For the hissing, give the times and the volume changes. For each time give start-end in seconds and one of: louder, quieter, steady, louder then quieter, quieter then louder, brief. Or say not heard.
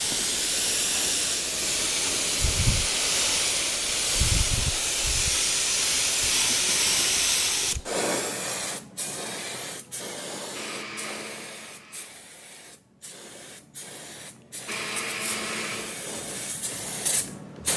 0.0-17.7 quieter then louder.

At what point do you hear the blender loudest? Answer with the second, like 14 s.
15 s.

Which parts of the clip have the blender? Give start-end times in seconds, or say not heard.
10.5-12.1, 14.7-16.1.